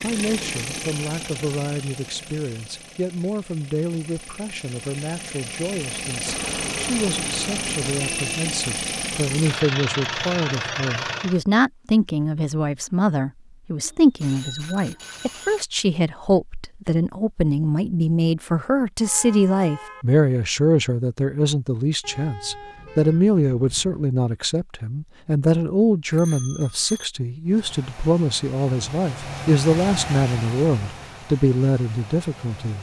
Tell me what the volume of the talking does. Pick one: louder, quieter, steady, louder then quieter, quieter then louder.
louder.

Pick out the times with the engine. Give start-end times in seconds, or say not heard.
0.0-11.4, 27.4-32.7.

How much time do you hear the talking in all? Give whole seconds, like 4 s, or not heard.
33 s.